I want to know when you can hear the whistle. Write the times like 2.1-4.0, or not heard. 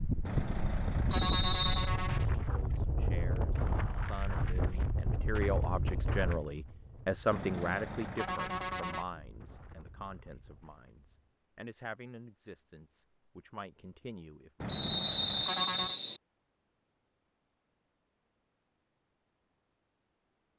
1.1-1.9, 14.7-16.2.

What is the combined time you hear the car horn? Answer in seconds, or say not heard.
5 s.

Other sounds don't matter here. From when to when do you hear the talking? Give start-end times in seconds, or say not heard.
2.4-14.5.